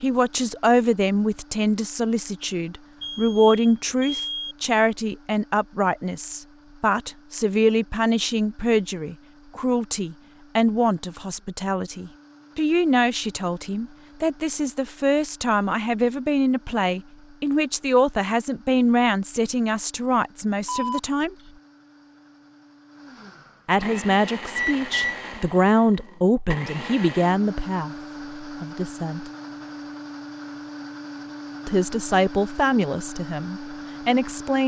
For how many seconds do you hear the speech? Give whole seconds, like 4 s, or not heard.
30 s.